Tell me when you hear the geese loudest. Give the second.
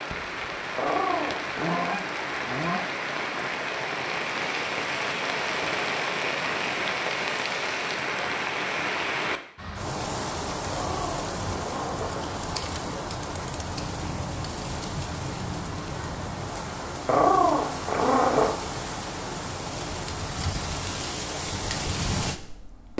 2 s.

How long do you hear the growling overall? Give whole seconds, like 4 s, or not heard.
4 s.